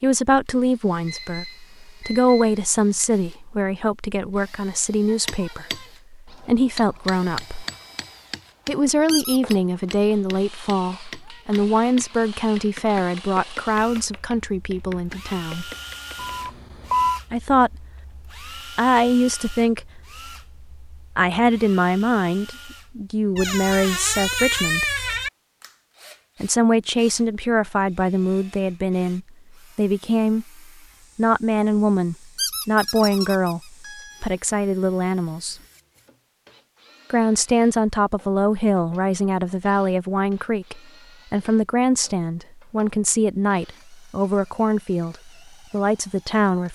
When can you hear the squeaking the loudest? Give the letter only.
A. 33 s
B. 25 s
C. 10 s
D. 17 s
B.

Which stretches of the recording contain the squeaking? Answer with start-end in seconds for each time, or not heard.
9.1-9.6, 23.4-25.3, 32.4-33.6.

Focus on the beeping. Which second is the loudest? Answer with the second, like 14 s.
17 s.